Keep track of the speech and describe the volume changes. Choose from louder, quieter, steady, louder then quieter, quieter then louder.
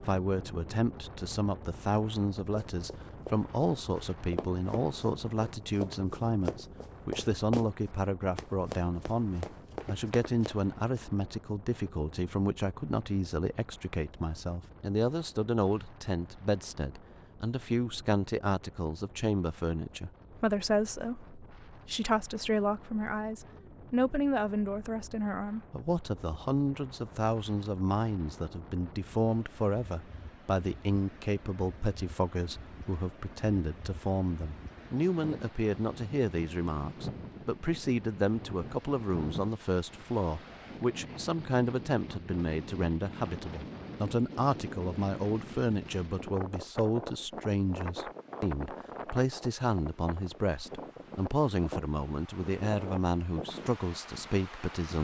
steady.